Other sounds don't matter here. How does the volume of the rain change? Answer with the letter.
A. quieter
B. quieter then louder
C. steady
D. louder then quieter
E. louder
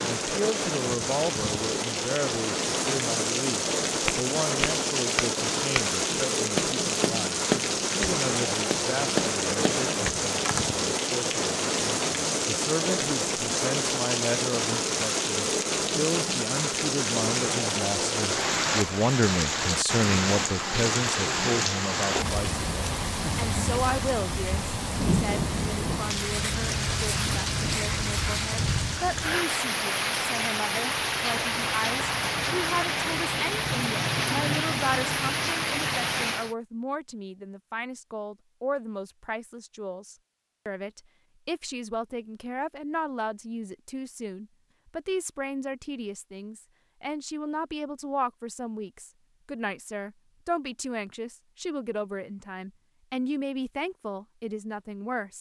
C.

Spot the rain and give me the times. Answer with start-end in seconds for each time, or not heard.
0.0-36.5.